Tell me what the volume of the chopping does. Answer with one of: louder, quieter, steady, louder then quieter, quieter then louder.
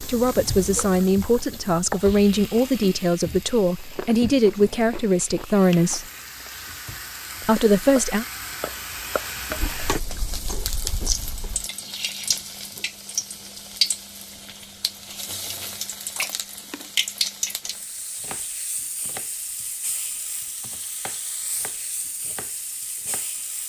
quieter then louder.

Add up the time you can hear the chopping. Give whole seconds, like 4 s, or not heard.
6 s.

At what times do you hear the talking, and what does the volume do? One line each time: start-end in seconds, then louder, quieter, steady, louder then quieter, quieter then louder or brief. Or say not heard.
0.0-6.0 steady
7.4-8.2 brief.